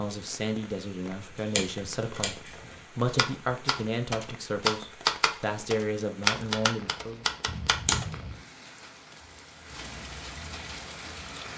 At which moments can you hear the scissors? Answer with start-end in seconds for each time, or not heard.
1.4-2.8, 7.5-8.3.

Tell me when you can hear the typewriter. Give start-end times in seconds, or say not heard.
3.0-8.1.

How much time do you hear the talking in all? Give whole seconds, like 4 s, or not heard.
7 s.